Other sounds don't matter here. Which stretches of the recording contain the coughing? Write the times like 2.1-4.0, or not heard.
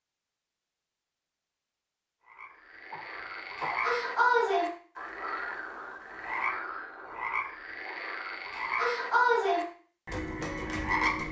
2.9-4.0.